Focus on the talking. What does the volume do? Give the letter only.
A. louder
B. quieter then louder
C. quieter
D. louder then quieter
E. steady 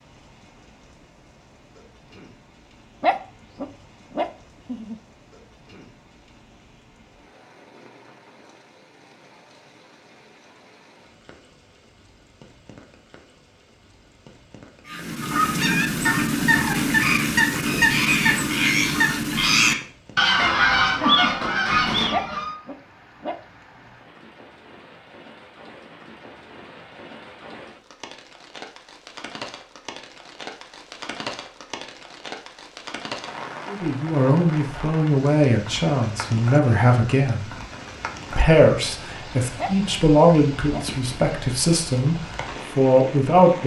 E.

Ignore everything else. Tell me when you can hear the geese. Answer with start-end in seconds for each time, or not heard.
14.8-22.6.